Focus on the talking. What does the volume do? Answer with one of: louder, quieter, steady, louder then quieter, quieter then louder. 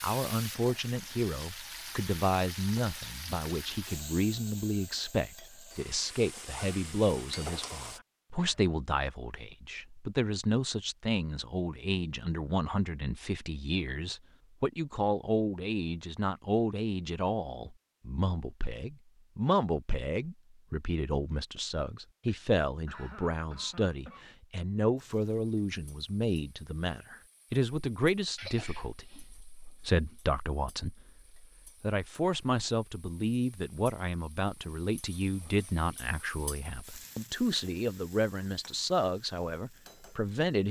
steady.